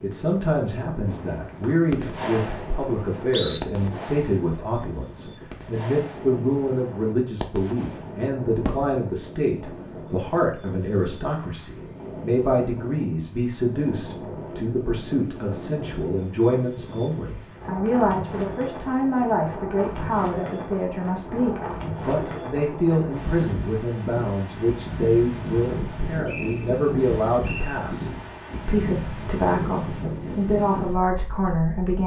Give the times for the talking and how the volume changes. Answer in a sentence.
The talking can be heard from 0.0 to 32.0 s, at a steady volume.